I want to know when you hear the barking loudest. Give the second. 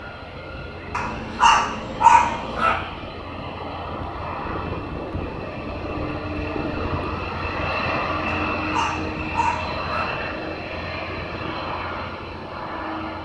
2 s.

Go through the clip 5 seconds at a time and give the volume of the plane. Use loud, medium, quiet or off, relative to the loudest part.
medium, loud, loud.